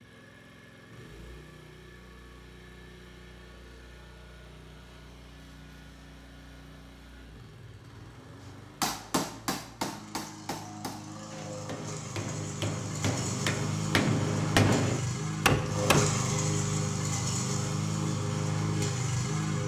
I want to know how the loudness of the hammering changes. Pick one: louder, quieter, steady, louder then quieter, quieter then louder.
quieter then louder.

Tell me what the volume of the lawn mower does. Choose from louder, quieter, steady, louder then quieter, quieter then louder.
louder.